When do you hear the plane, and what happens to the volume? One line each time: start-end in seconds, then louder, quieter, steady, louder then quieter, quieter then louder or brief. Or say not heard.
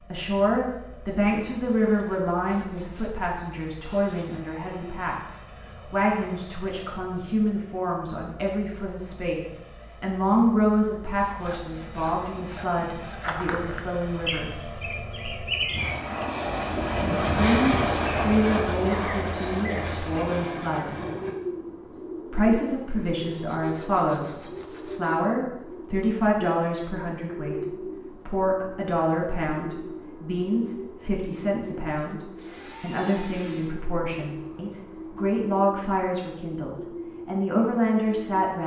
0.0-21.4 louder.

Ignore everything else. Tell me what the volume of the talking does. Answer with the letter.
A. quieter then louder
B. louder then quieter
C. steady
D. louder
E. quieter
C.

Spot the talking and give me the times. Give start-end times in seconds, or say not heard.
0.0-14.5, 17.2-20.9, 22.3-38.6.